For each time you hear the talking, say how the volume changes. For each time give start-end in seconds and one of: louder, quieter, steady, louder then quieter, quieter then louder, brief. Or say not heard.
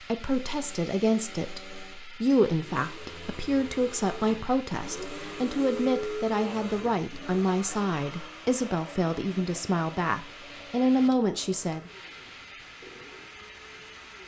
0.0-11.9 steady.